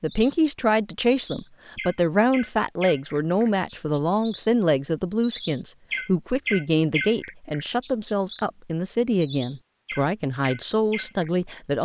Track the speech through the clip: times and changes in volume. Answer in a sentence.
You can hear the speech from 0.0 to 11.8 s, at a steady volume.